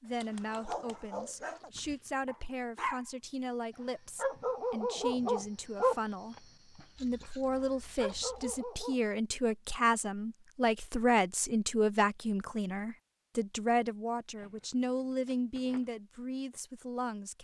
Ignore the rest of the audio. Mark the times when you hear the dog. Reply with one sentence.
The dog can be heard from 0.2 to 3.0 s and from 3.8 to 9.0 s.